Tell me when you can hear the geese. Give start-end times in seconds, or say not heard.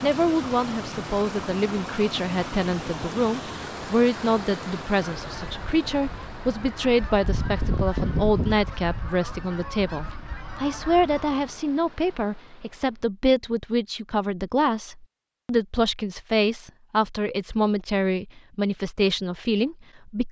5.0-11.6.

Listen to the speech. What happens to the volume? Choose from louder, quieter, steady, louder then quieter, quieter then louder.
steady.